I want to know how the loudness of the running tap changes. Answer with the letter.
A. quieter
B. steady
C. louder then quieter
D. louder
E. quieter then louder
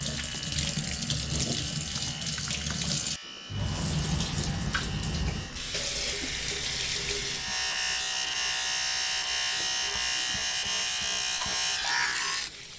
A.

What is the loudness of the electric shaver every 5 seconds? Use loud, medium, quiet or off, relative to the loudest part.
quiet, loud, loud.